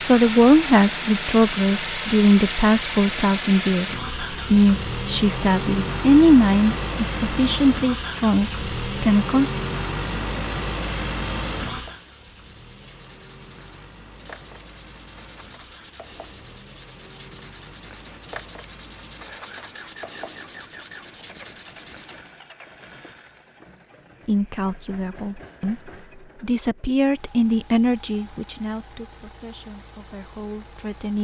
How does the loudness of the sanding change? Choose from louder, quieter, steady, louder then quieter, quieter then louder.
louder.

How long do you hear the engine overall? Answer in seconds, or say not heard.
31 s.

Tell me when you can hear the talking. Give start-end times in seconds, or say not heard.
0.0-9.5, 24.2-31.1.